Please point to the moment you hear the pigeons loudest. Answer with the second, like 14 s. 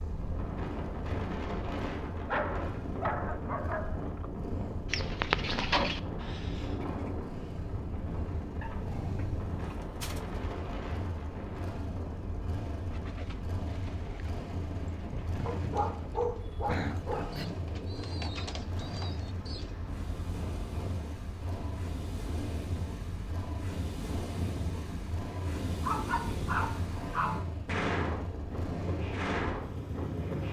5 s.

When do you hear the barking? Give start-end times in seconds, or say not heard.
2.2-4.3, 8.6-10.6, 15.4-17.4, 25.8-27.4.